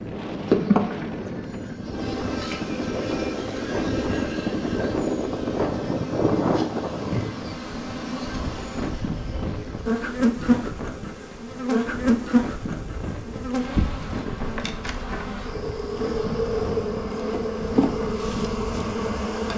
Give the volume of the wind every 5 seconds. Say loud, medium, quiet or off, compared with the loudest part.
loud, loud, medium, medium.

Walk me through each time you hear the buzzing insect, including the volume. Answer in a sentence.
You can hear the buzzing insect from 0.5 to 19.5 s, getting louder.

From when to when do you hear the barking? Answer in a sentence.
The barking can't be heard in this clip.